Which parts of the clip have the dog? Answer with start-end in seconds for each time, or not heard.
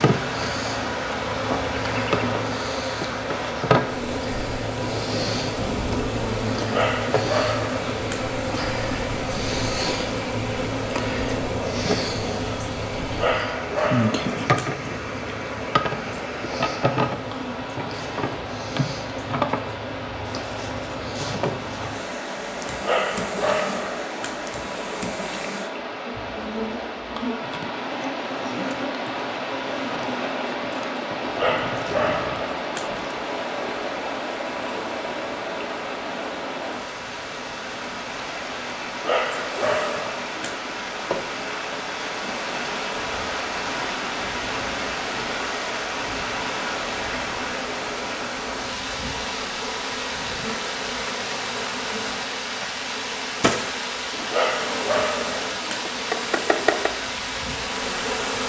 6.7-8.2, 13.2-14.7, 22.8-24.4, 31.4-32.9, 39.0-40.5, 54.3-55.9.